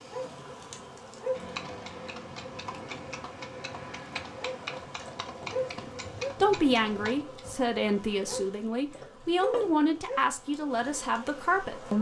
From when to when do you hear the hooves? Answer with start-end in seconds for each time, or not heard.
1.3-7.2.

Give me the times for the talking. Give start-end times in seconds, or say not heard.
6.4-11.9.